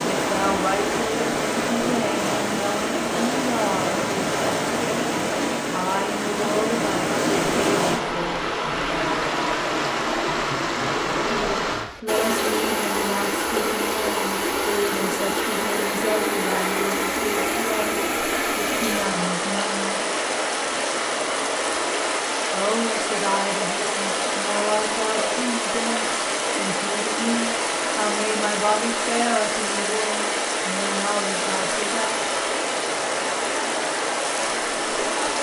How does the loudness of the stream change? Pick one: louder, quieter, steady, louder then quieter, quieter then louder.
steady.